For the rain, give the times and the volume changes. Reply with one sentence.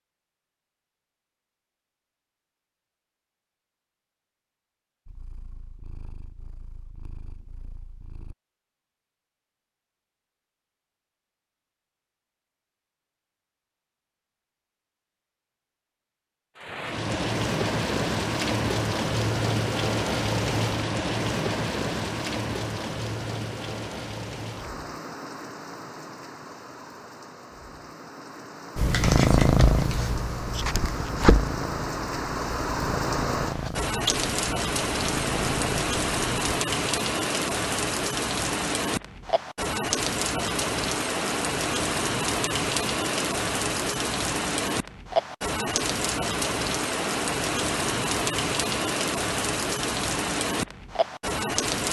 The rain can be heard from 16.6 to 51.8 s, getting quieter then louder.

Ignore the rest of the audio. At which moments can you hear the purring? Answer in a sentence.
The purring can be heard from 5.0 to 8.3 s and from 28.8 to 36.6 s.